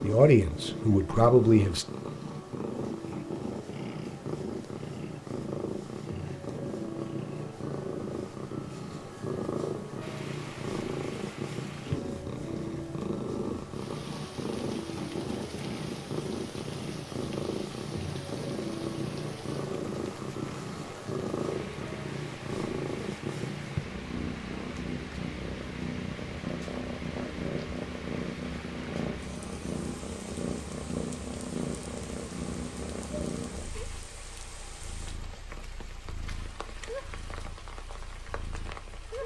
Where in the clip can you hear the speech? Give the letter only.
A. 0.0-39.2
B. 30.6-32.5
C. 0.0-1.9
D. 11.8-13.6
C.